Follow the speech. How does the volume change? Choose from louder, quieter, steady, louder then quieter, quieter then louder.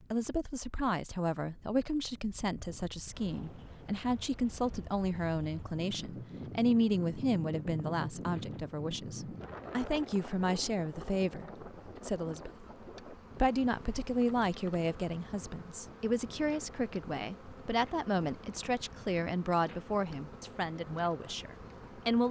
steady.